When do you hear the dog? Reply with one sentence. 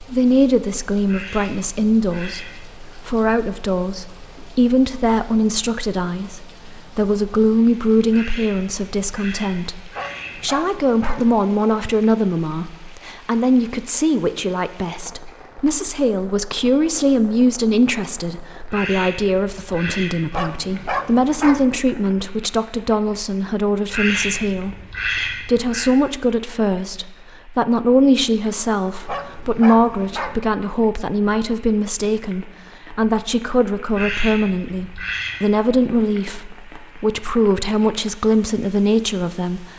You can hear the dog from 9.9 to 11.2 s, from 20.3 to 21.6 s and from 29.1 to 30.4 s.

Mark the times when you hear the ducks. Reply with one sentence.
You can hear the ducks from 1.1 to 2.8 s, from 8.1 to 10.5 s, from 18.7 to 20.4 s, from 23.9 to 25.9 s and from 33.9 to 35.4 s.